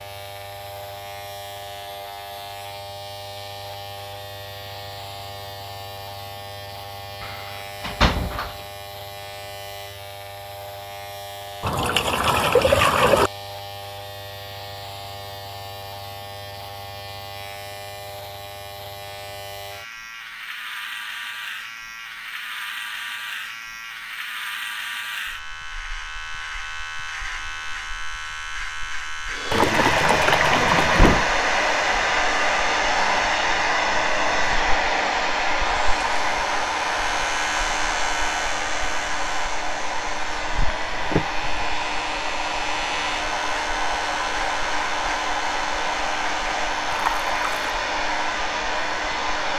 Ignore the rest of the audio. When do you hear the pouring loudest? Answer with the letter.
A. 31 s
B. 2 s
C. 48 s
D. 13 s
D.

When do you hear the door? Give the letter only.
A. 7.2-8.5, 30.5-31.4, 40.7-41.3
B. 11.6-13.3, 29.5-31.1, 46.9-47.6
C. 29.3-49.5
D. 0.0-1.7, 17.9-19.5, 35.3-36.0
A.